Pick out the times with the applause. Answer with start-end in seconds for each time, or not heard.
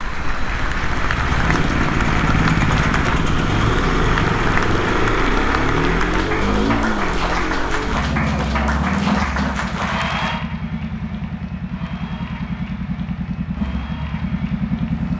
0.0-15.1.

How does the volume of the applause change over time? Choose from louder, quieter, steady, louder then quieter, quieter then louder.
quieter.